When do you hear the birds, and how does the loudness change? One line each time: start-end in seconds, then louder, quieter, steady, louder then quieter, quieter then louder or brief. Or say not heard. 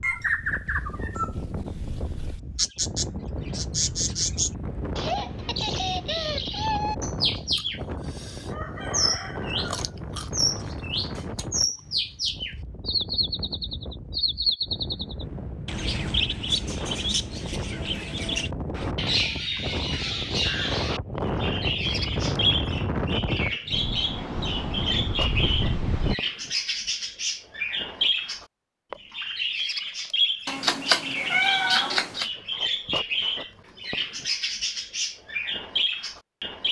0.0-36.6 steady.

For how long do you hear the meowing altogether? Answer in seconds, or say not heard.
2 s.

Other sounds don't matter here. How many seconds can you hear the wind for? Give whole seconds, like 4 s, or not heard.
26 s.